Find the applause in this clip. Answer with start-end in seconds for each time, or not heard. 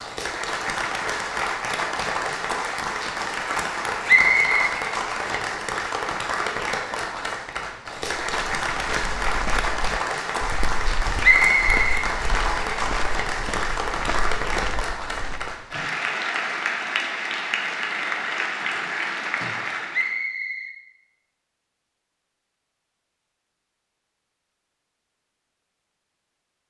0.0-20.1.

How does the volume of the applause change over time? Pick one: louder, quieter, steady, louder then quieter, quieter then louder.
steady.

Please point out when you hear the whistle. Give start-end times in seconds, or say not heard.
4.0-4.7, 11.2-12.8, 19.9-20.8.